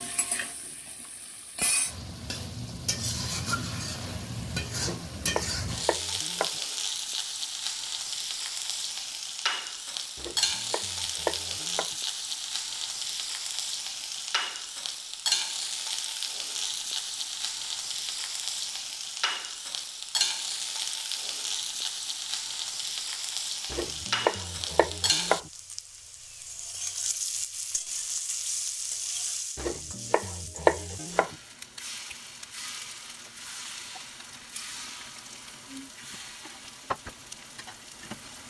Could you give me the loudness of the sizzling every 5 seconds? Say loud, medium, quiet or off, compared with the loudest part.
loud, loud, loud, loud, loud, loud, medium, medium.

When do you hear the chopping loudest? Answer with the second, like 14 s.
31 s.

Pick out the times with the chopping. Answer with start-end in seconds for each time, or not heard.
4.8-6.5, 10.2-11.9, 23.7-25.5, 29.6-31.4.